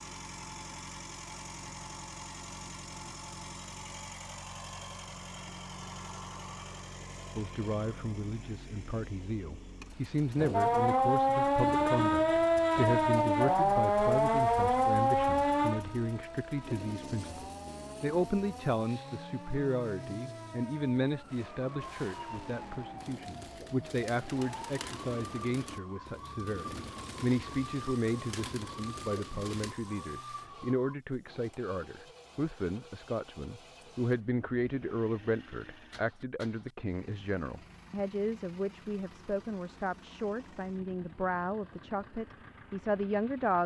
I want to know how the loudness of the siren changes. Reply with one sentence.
The loudness of the siren goes down.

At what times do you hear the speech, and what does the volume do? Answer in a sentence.
You can hear the speech from 7.3 to 43.6 s, at a steady volume.